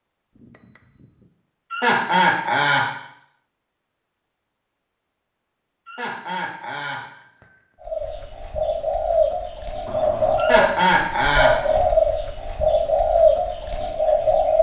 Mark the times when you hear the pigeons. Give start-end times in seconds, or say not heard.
7.8-14.5.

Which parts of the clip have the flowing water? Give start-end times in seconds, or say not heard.
not heard.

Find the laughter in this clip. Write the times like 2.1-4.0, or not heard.
1.7-2.9, 5.8-7.0, 10.3-11.6.